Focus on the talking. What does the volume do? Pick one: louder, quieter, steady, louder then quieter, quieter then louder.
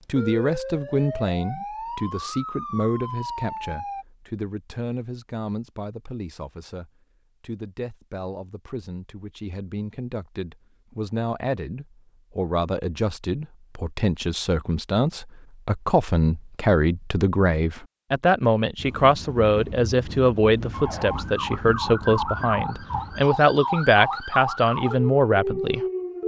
quieter then louder.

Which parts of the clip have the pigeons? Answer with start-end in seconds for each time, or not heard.
not heard.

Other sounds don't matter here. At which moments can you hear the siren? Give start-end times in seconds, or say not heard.
0.1-4.0, 20.7-26.2.